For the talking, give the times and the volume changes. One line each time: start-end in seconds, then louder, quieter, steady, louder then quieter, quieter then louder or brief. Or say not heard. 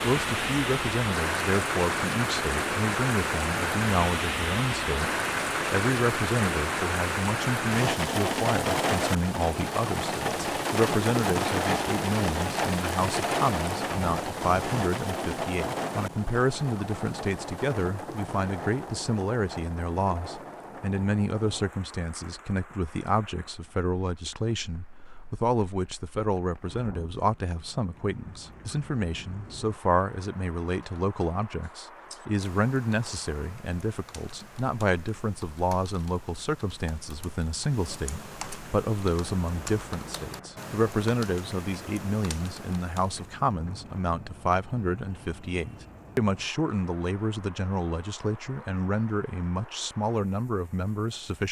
0.0-51.4 steady.